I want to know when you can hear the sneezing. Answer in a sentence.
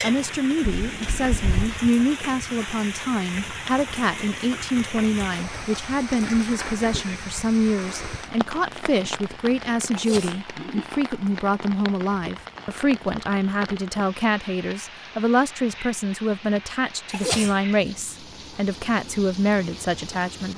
You can hear the sneezing from 0.7 to 1.8 s, from 9.9 to 10.4 s and from 17.1 to 17.6 s.